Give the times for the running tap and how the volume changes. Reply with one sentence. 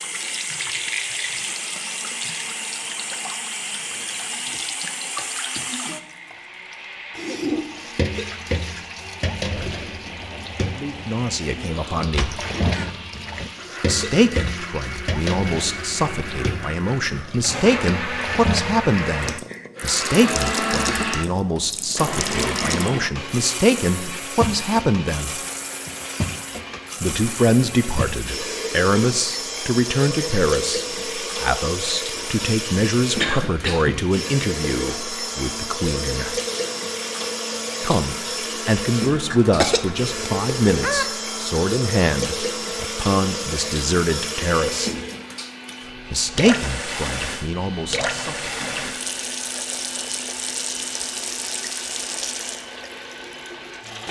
You can hear the running tap from 0.0 to 54.0 s, at a steady volume.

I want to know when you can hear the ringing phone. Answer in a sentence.
The ringing phone can't be heard in this clip.